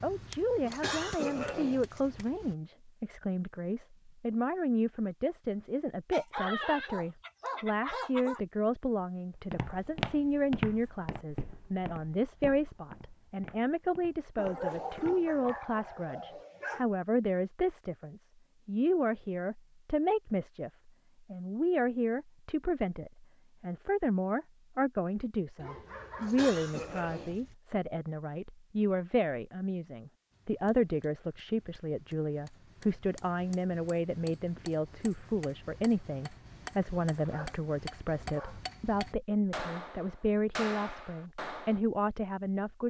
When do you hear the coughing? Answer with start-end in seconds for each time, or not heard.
0.6-2.0, 26.1-27.4.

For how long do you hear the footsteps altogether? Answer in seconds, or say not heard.
6 s.